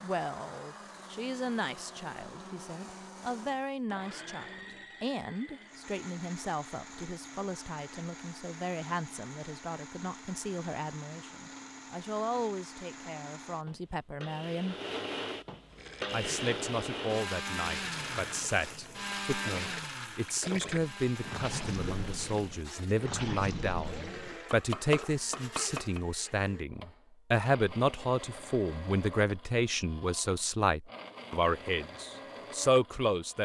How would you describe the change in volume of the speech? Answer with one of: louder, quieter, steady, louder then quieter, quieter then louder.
louder.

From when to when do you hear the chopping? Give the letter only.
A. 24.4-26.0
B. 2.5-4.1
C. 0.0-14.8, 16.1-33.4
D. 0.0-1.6
A.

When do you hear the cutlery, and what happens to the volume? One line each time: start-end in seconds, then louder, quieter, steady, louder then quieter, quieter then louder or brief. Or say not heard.
not heard.